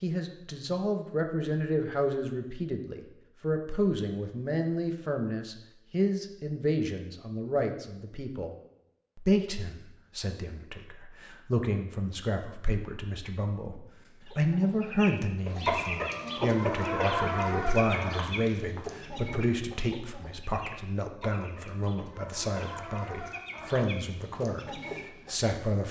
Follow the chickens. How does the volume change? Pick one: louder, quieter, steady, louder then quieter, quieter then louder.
quieter.